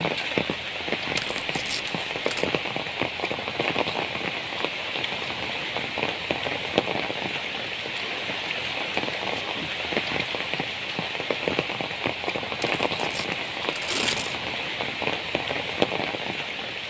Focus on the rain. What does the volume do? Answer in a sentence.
The loudness of the rain stays about the same.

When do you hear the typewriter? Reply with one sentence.
The typewriter can't be heard in this clip.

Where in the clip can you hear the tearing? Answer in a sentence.
You can hear the tearing from 1.1 to 2.5 s and from 12.6 to 14.3 s.